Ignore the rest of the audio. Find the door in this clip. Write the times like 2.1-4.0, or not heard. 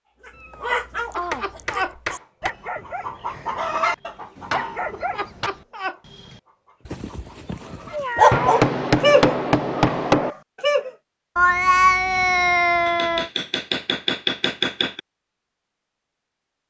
not heard.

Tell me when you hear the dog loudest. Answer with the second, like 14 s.
8 s.